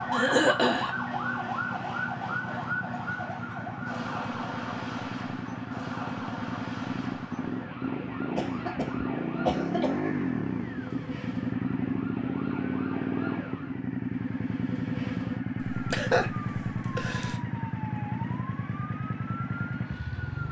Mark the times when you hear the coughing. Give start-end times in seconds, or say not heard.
0.1-0.9, 8.3-10.0, 15.6-17.4.